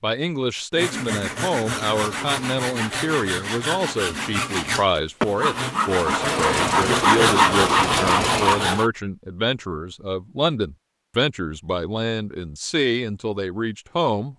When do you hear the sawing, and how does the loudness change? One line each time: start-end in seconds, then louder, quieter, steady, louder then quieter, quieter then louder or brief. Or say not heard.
0.7-8.9 louder.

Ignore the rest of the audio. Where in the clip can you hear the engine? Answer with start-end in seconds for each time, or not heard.
6.0-8.8.